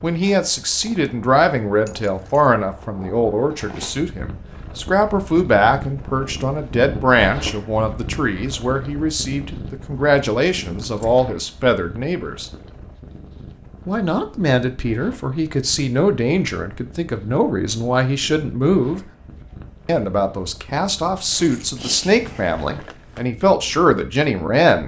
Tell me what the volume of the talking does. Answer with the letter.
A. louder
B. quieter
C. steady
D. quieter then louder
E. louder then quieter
C.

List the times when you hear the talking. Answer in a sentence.
The talking can be heard from 0.0 to 12.5 s, from 13.8 to 19.0 s and from 19.9 to 24.8 s.